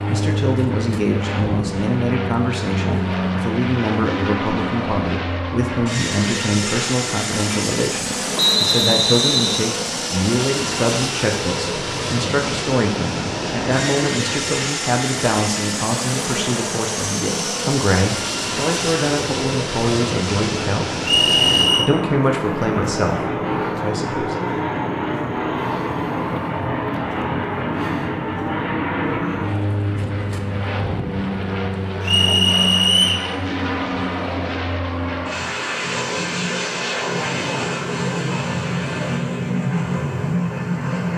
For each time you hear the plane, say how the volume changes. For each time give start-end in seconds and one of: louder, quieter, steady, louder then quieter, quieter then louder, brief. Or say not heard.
0.0-41.1 steady.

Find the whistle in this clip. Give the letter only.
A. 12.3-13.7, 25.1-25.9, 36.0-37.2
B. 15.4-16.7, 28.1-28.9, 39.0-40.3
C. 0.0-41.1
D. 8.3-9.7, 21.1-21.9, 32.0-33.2
D.